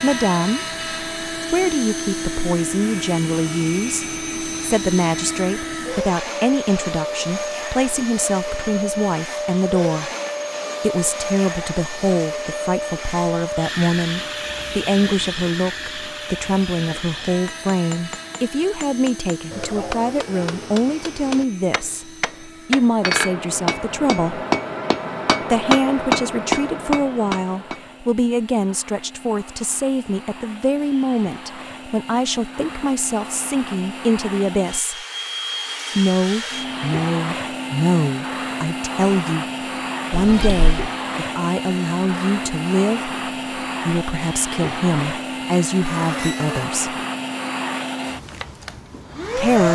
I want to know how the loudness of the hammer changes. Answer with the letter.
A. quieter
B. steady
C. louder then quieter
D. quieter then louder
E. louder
E.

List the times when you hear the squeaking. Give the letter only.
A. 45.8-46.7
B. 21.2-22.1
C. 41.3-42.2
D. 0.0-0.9
A.